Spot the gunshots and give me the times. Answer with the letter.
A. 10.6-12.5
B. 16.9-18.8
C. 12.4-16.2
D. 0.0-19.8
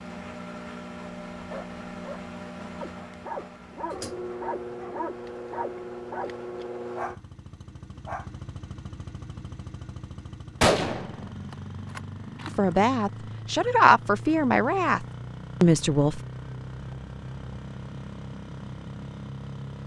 A.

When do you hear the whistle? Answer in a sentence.
You can't hear the whistle here.